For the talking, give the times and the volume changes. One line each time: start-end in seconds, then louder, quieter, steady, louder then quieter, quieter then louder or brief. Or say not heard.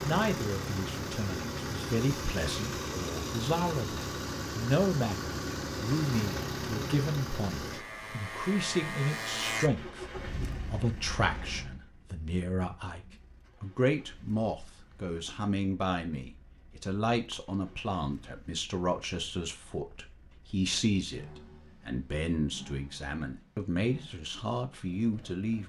0.0-25.6 steady.